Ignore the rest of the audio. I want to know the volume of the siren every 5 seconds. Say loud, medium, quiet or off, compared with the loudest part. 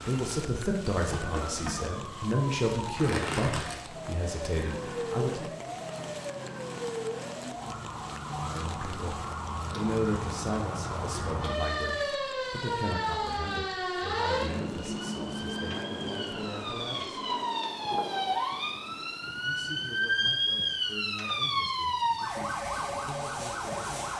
medium, medium, loud, loud, loud.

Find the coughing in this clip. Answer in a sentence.
The coughing can't be heard in this clip.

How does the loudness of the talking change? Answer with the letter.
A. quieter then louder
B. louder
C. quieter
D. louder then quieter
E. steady
C.